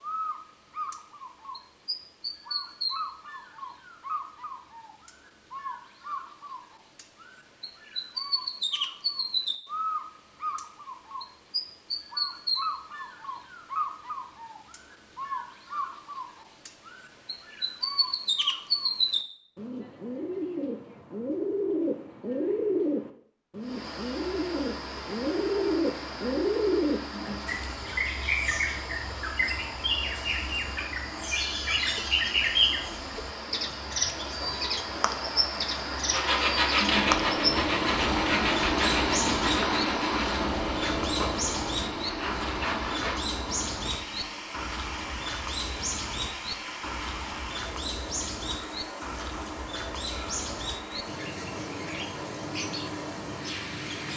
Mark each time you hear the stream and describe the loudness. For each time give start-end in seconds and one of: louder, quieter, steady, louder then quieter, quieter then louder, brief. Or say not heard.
23.6-54.1 louder then quieter.